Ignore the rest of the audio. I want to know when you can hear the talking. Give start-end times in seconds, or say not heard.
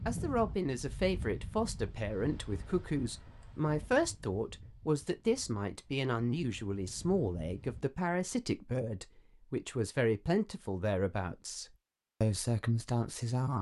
0.1-13.5.